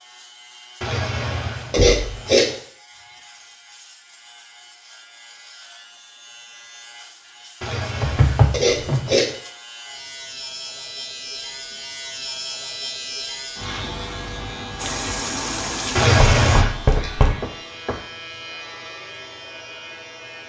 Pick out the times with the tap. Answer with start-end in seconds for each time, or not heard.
14.8-16.6.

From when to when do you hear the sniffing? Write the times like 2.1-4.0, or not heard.
0.8-2.5, 7.6-9.3, 15.9-16.8.